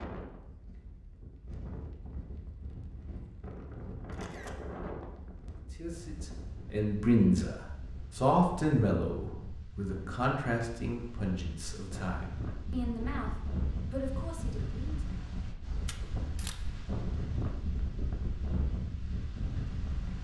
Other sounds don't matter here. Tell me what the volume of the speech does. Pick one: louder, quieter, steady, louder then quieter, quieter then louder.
quieter.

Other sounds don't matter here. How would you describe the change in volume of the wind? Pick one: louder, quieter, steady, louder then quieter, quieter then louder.
louder.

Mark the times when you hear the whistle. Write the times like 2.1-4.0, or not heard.
not heard.